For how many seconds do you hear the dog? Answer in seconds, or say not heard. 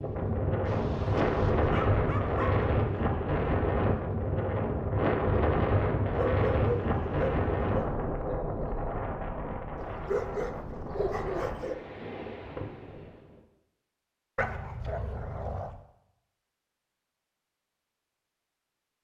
7 s.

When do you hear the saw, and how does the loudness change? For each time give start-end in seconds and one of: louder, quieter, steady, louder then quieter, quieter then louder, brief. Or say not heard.
not heard.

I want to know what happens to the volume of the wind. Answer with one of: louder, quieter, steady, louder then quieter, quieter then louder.
quieter.